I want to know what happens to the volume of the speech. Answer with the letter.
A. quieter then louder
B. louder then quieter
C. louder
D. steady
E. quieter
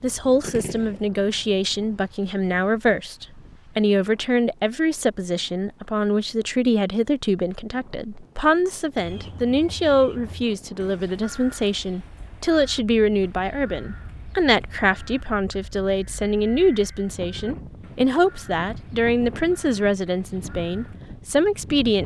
D.